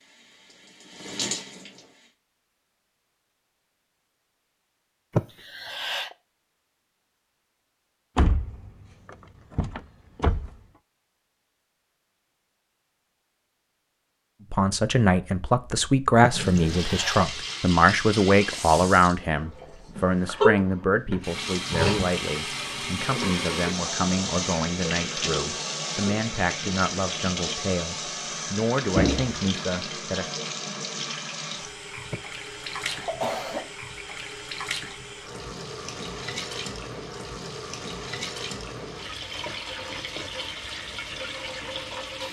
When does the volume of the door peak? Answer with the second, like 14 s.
29 s.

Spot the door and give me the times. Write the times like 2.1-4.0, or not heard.
8.2-10.5, 28.9-29.4.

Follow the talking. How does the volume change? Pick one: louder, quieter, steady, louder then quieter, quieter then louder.
quieter.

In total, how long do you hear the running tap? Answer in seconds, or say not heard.
28 s.